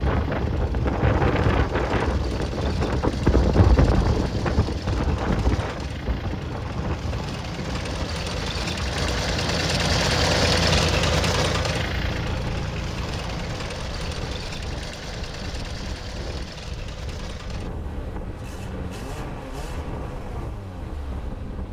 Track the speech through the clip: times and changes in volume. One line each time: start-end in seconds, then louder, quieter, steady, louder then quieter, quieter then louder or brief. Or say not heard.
not heard.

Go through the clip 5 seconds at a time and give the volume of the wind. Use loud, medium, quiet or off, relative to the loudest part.
loud, medium, quiet, quiet, quiet.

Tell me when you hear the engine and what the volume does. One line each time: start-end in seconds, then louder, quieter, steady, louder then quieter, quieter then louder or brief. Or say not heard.
0.0-21.6 louder then quieter.